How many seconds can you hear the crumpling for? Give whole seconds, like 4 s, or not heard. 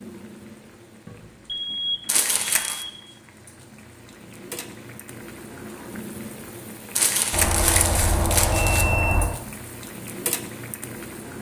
3 s.